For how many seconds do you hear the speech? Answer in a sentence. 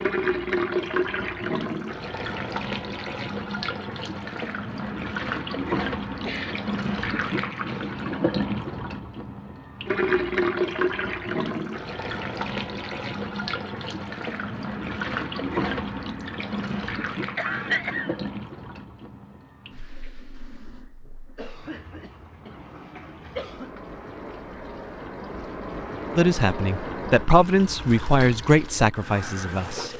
You can hear the speech for 4 seconds altogether.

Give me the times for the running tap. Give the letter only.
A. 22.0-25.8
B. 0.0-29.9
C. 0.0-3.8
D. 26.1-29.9
B.